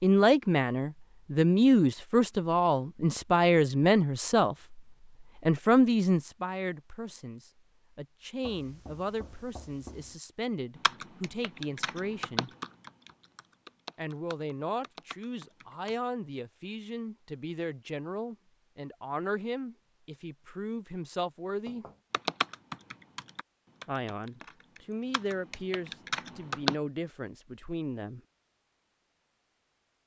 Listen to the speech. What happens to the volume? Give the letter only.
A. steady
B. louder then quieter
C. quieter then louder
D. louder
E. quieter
E.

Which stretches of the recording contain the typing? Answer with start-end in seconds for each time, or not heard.
10.8-15.9, 22.1-26.8.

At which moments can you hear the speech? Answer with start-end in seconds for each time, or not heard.
0.0-4.8, 5.4-12.5, 13.9-21.9, 23.9-28.2.